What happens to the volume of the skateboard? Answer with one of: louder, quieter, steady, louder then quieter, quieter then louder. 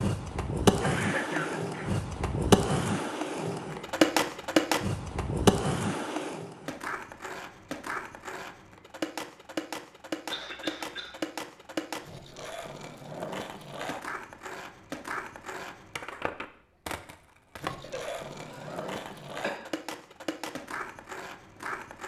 quieter.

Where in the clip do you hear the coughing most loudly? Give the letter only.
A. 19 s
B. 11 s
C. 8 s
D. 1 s
D.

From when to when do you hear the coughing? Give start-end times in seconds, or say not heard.
0.8-1.9, 10.2-11.2, 17.8-19.6.